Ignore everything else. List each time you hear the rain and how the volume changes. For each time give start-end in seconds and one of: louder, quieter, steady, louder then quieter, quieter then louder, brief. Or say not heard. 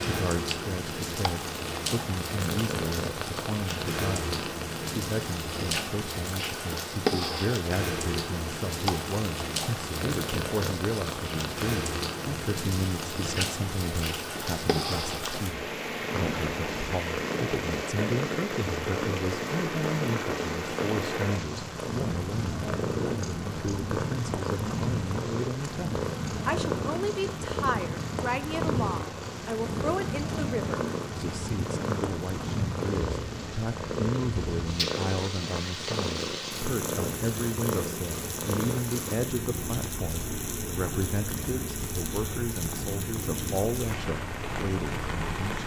0.0-45.6 steady.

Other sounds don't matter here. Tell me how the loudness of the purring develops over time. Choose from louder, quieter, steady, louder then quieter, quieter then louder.
steady.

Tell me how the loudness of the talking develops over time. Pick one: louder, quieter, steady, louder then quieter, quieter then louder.
steady.